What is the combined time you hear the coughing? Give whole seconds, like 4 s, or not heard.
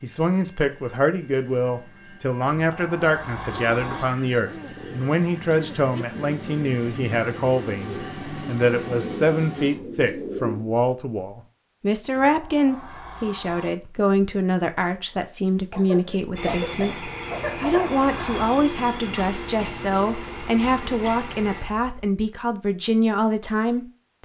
2 s.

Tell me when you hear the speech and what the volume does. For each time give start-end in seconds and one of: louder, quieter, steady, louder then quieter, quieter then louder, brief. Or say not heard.
0.0-24.2 steady.